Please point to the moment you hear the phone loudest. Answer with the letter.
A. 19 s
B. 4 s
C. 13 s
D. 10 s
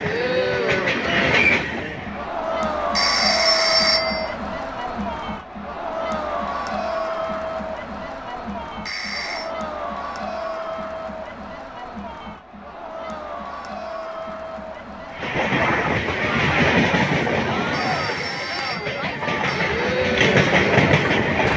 B.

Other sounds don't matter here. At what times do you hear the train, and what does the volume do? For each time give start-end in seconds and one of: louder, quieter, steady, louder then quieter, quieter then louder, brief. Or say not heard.
0.0-2.3 brief
15.1-21.5 quieter then louder.